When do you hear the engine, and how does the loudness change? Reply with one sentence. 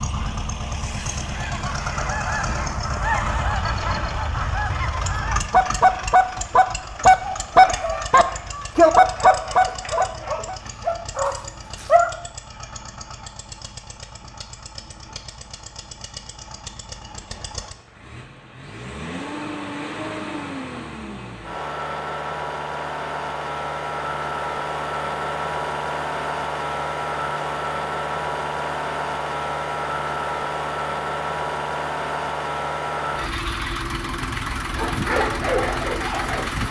You can hear the engine from 0.0 to 36.6 s, getting quieter then louder.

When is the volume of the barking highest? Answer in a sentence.
The loudest moment of the barking is at 12 seconds.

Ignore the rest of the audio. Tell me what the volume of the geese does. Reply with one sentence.
The volume of the geese goes up.